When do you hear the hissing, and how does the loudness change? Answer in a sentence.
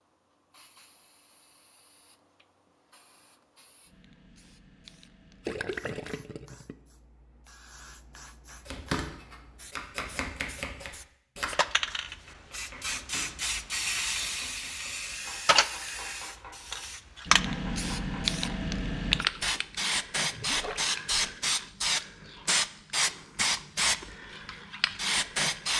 The hissing can be heard from 0.0 to 25.7 s, getting louder.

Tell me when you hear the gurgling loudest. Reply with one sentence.
The loudest moment of the gurgling is at 6 seconds.